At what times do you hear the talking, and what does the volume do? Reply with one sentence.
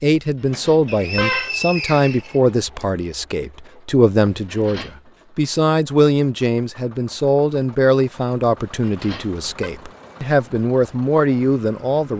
You can hear the talking from 0.0 to 12.1 s, at a steady volume.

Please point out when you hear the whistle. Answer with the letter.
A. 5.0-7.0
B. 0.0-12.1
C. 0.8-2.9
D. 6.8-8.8
C.